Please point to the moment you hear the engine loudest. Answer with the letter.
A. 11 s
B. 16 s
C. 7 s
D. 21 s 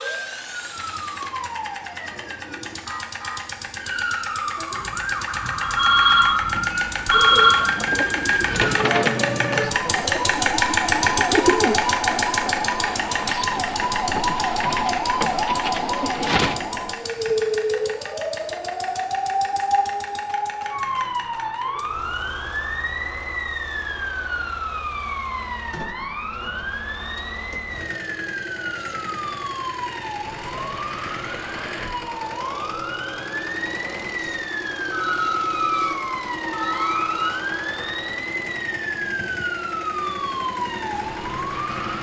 A.